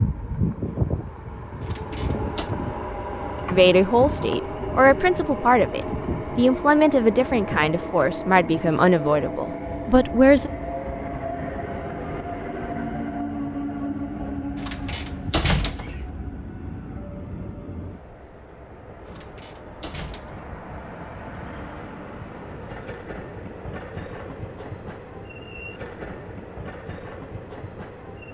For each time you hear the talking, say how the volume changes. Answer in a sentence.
The talking can be heard from 3.5 to 10.5 s, at a steady volume.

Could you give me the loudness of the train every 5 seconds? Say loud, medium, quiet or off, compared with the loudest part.
loud, loud, loud, medium, medium, medium.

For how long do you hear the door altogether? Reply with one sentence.
The door can be heard for 4 seconds in total.